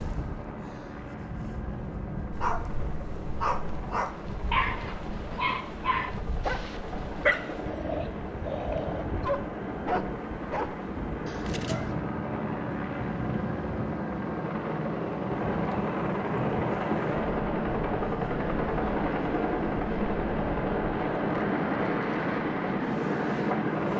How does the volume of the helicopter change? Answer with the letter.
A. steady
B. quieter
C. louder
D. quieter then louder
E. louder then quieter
C.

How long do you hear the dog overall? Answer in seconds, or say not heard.
10 s.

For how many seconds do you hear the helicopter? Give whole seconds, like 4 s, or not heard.
24 s.